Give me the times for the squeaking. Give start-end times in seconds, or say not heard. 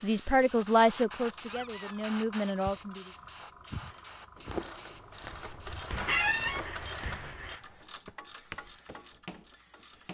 1.4-2.0, 6.0-6.6.